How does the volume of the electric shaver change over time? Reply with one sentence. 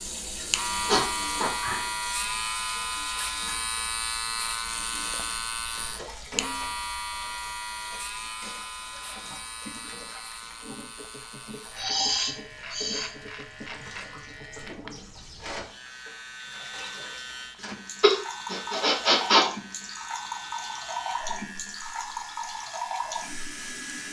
The loudness of the electric shaver goes down.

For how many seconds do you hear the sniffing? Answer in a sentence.
The sniffing can be heard for 4 seconds in total.